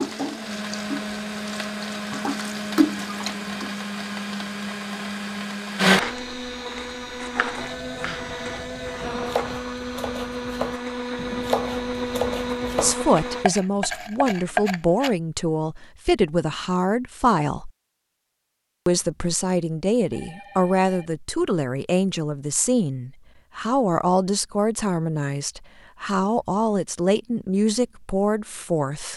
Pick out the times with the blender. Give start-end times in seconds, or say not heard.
0.0-13.4.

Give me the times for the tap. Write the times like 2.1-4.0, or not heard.
0.0-3.9.